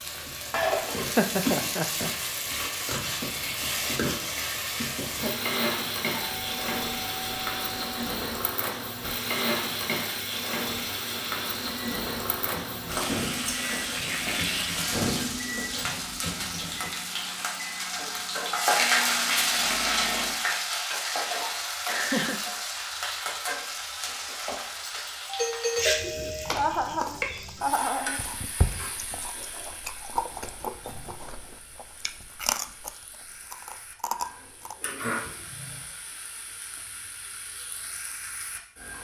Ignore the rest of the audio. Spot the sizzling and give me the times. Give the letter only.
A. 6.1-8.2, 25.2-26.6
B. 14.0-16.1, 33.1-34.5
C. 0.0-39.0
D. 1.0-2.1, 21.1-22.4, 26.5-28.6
C.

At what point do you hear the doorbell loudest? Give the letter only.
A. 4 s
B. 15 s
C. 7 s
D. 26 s
D.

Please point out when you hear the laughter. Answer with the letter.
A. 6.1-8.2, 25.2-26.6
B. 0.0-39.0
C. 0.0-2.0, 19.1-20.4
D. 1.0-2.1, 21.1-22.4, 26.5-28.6
D.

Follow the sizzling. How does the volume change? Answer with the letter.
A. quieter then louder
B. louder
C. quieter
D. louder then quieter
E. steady
C.